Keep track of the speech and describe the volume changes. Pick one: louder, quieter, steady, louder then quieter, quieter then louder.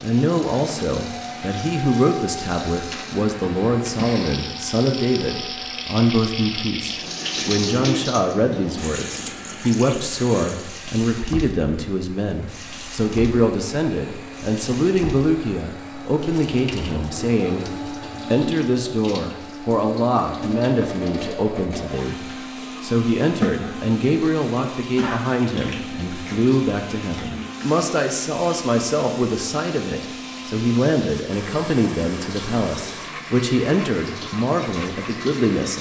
steady.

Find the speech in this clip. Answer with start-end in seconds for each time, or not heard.
0.0-35.7.